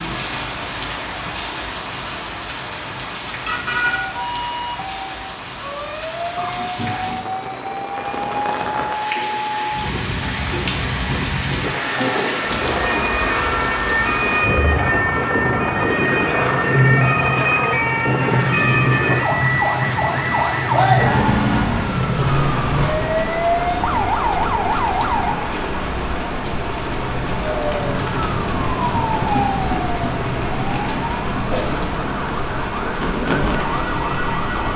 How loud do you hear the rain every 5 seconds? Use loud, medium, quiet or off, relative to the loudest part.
medium, medium, loud, loud, loud, loud, loud.